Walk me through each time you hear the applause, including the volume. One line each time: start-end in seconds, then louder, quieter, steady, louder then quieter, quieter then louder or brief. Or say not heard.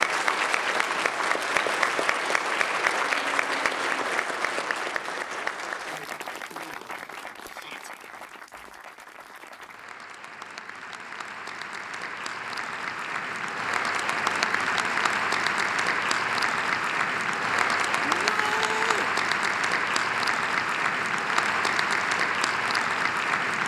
0.0-23.6 quieter then louder.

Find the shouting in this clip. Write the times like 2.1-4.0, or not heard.
7.5-7.9, 18.1-19.1.